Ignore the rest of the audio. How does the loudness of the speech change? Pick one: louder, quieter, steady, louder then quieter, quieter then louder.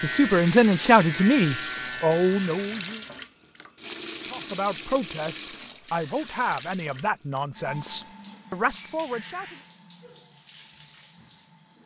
quieter.